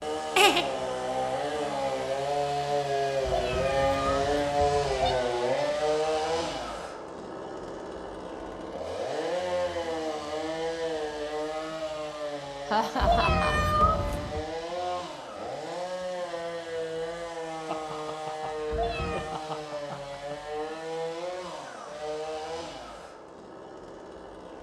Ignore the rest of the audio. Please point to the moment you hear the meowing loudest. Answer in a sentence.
The volume of the meowing peaks at 14 seconds.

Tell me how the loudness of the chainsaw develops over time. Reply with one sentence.
The volume of the chainsaw goes down.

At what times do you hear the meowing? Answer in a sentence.
The meowing can be heard from 3.2 to 5.2 s, from 12.9 to 14.4 s and from 18.7 to 19.4 s.